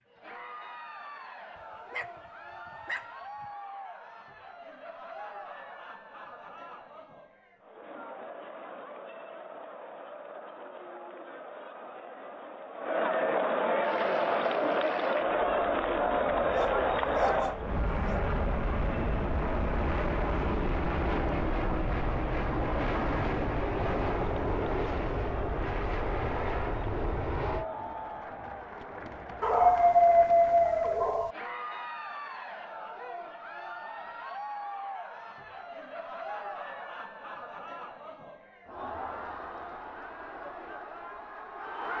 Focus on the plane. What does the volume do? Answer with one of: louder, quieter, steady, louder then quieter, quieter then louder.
louder.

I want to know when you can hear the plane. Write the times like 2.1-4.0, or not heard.
13.8-27.6.